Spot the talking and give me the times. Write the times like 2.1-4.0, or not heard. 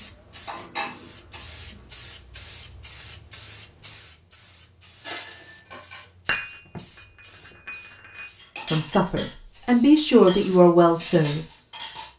8.7-11.4.